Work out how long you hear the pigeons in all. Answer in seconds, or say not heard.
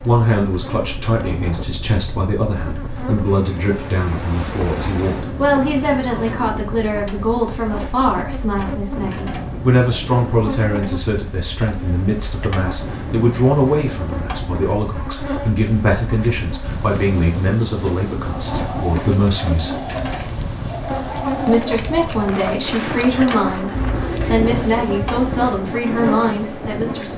7 s.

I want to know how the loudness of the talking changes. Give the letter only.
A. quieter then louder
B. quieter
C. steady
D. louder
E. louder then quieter
C.